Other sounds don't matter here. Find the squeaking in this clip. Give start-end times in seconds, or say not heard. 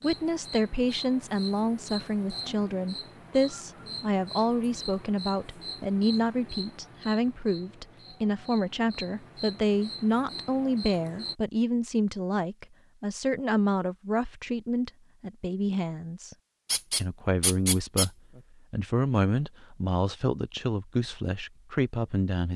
16.6-18.4.